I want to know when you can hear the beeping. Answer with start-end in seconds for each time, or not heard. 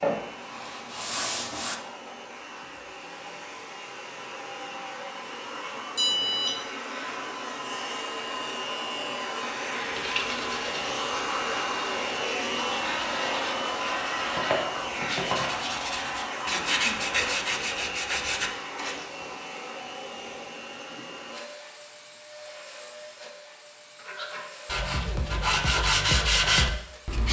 6.0-6.6.